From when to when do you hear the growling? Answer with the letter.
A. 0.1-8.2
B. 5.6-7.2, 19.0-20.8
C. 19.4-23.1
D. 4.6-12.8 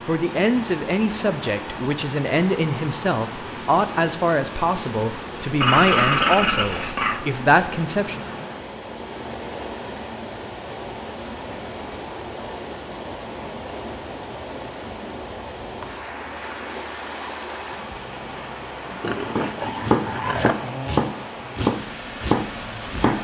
B.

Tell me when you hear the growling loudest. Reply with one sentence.
The volume of the growling peaks at 6 seconds.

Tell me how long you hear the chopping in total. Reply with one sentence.
The chopping can be heard for 4 seconds in total.